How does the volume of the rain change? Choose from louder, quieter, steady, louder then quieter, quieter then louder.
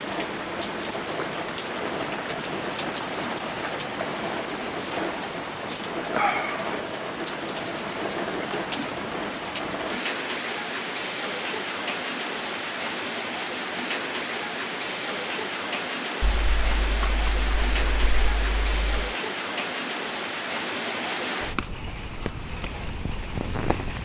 steady.